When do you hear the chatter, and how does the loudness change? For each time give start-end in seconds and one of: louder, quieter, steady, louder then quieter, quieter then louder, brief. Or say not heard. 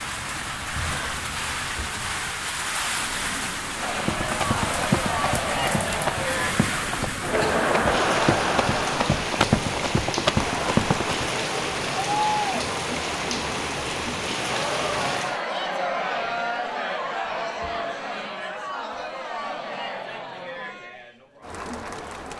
3.8-22.3 quieter.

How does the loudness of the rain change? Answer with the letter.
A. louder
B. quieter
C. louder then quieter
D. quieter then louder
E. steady
E.